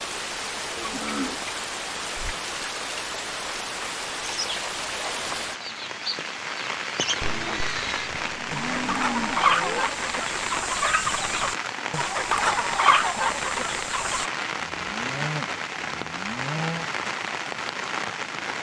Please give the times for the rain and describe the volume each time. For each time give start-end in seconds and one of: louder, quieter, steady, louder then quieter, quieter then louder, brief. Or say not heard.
0.0-18.5 steady.